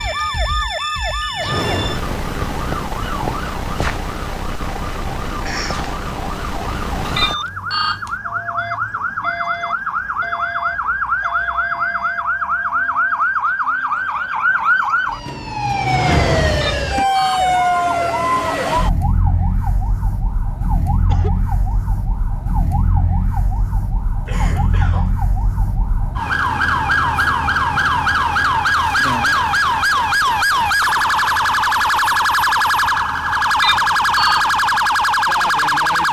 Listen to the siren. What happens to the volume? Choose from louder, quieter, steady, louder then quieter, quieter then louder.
louder.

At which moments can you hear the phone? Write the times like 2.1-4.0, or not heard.
7.2-8.1, 16.6-17.5, 33.6-34.6.